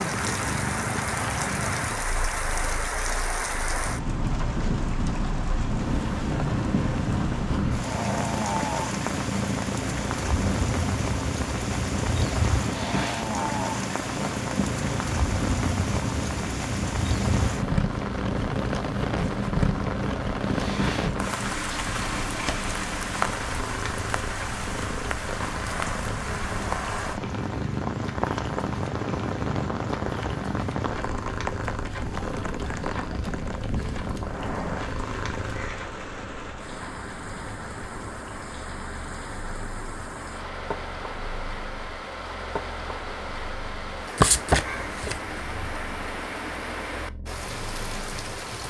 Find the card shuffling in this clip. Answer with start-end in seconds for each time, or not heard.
44.1-45.7.